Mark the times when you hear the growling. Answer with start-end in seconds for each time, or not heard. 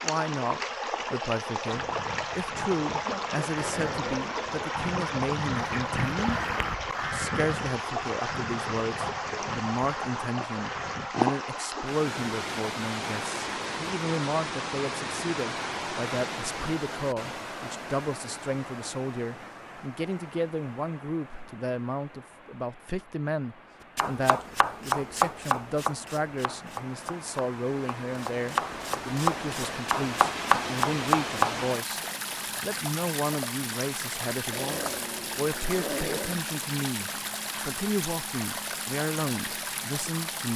3.5-4.5, 34.5-36.5.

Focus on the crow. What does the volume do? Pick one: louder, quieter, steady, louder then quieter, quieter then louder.
louder then quieter.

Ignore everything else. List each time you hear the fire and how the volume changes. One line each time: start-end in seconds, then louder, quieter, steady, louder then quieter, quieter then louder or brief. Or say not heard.
not heard.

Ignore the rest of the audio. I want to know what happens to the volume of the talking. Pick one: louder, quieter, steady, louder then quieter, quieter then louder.
steady.